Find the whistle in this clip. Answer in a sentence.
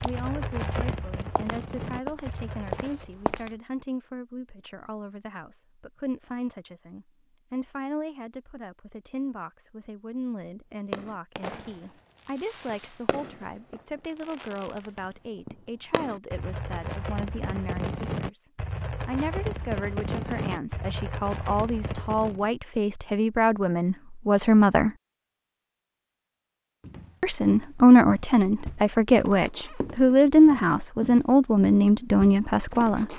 You can't hear the whistle here.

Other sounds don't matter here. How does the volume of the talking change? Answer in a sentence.
The loudness of the talking goes up.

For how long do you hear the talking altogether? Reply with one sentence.
You can hear the talking for 31 seconds altogether.